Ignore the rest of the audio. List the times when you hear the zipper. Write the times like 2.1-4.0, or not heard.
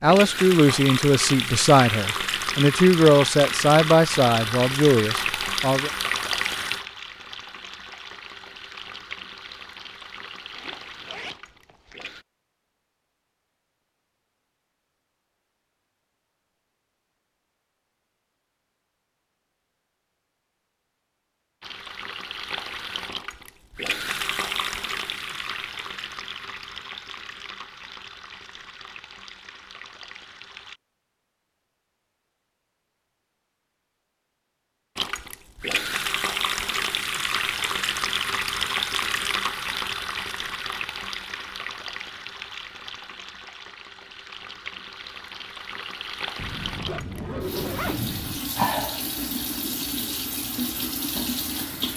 10.5-12.2, 46.4-48.4.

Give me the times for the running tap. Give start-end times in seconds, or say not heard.
0.0-12.2, 21.6-30.8, 35.0-51.9.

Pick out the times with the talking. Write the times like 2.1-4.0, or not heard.
0.0-5.9.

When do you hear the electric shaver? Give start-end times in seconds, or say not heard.
not heard.